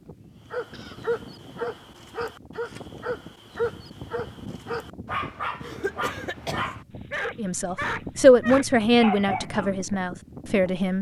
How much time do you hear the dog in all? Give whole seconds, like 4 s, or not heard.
9 s.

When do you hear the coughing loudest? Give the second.
6 s.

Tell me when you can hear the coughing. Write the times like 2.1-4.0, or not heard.
0.1-1.1, 5.6-6.7.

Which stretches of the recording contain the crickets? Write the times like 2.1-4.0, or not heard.
not heard.